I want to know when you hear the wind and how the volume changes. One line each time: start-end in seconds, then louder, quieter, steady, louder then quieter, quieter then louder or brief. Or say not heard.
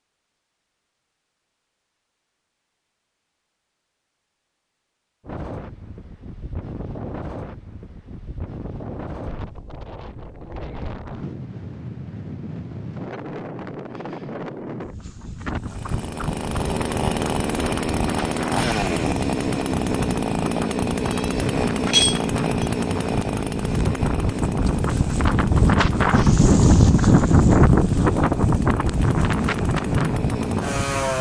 5.2-31.1 louder.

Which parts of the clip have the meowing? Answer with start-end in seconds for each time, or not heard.
21.1-22.6.